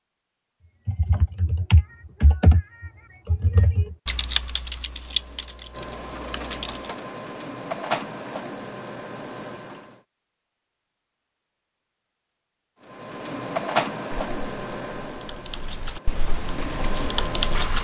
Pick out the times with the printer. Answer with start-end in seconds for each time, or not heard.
4.7-10.0, 12.8-17.7.